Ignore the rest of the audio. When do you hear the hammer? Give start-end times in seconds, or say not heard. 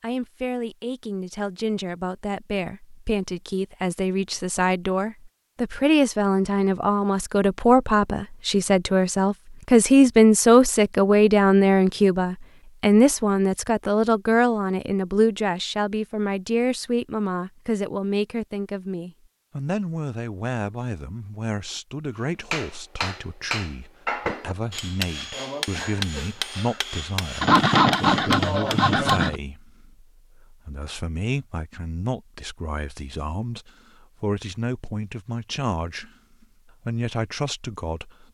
22.5-29.3.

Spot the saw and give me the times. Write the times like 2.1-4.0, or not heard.
27.4-29.4.